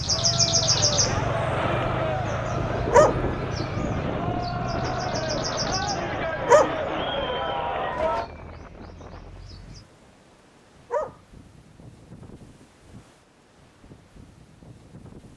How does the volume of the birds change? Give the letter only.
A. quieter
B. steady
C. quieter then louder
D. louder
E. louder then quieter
A.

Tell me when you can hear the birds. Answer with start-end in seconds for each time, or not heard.
0.0-9.8.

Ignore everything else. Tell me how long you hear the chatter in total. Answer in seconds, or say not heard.
8 s.